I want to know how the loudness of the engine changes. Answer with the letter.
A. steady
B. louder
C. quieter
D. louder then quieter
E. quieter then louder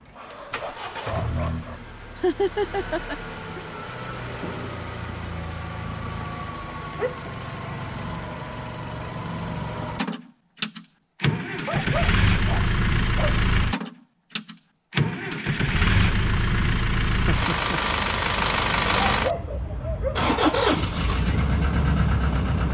B.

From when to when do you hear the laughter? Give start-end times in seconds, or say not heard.
2.2-3.6, 17.1-17.8.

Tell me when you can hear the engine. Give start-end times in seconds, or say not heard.
0.0-22.6.